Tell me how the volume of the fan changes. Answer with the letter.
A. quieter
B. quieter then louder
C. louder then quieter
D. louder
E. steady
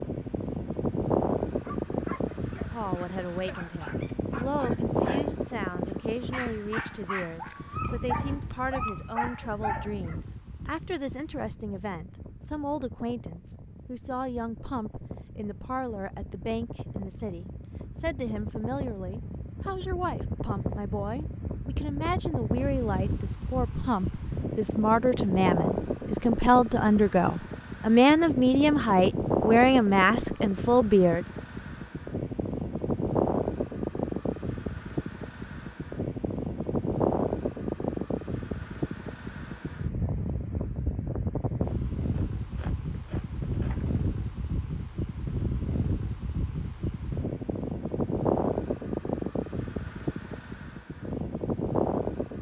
B.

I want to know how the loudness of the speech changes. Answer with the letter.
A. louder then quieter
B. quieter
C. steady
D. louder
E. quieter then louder
D.